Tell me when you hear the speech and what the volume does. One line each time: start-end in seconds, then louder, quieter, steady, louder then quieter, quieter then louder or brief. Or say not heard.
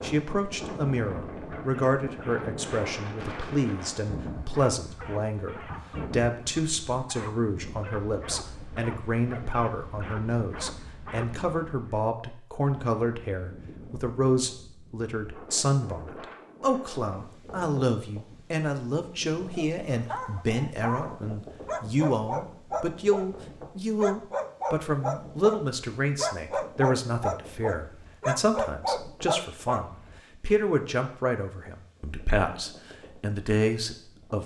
0.0-34.4 steady.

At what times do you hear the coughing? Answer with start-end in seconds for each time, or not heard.
not heard.